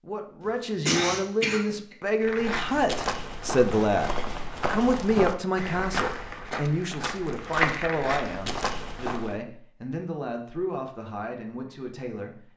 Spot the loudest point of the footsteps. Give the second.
8 s.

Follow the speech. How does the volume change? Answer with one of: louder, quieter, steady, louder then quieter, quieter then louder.
quieter.